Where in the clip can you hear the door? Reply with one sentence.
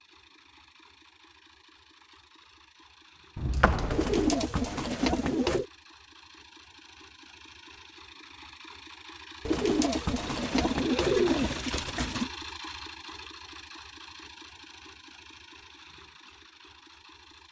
You can hear the door from 3.4 to 4.7 s.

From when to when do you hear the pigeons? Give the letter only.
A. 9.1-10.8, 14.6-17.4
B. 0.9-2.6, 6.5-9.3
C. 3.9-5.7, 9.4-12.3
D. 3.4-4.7
C.